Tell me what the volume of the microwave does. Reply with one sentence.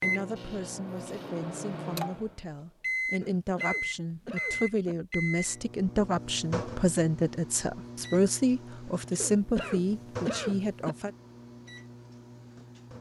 The loudness of the microwave goes up, then down.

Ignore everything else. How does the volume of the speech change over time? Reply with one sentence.
The loudness of the speech goes up.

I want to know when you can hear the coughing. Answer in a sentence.
The coughing can be heard from 3.2 to 5.0 s and from 9.2 to 10.9 s.